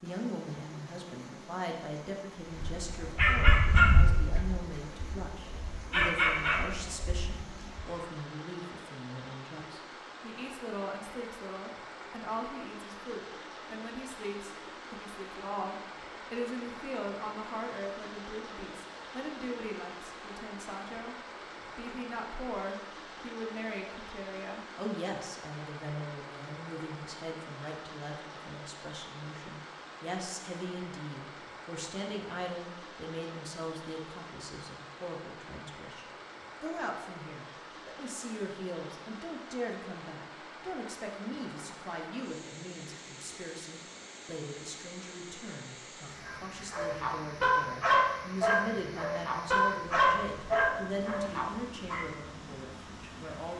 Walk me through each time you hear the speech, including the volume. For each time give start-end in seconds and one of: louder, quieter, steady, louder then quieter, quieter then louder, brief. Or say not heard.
0.0-53.5 steady.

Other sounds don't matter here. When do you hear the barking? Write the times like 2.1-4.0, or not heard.
2.6-7.8, 46.2-52.0.